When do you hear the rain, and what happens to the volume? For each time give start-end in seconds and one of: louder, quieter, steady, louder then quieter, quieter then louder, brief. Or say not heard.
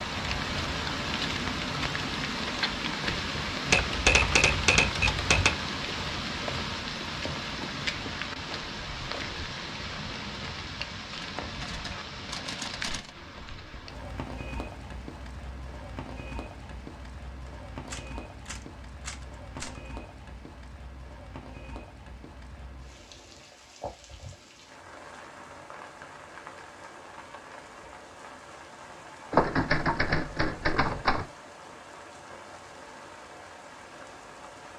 0.0-34.7 quieter.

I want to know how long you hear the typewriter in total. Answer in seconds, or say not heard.
8 s.